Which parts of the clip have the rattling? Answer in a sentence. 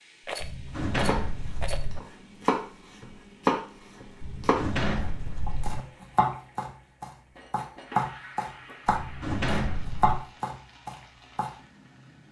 You can hear the rattling from 0.2 to 1.9 s.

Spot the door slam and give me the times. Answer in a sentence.
The door slam can be heard from 0.4 to 2.0 s, from 4.2 to 5.8 s and from 8.8 to 10.2 s.